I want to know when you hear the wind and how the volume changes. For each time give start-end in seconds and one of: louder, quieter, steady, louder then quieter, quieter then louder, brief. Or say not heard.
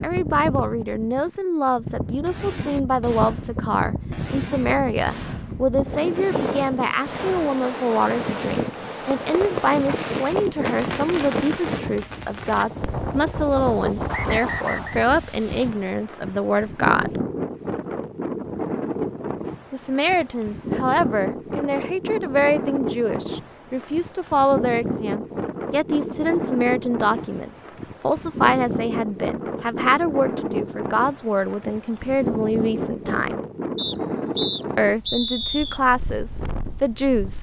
0.0-37.3 steady.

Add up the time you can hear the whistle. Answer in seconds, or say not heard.
3 s.